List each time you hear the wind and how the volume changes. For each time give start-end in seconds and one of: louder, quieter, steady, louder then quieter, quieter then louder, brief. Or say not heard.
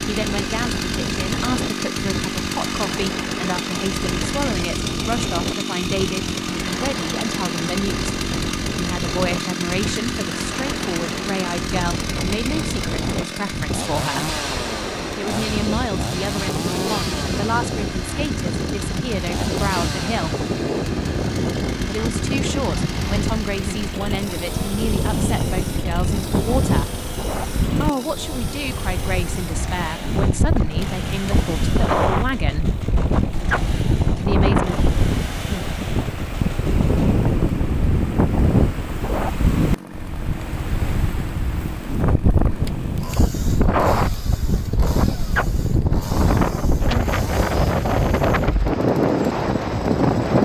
0.0-50.4 louder.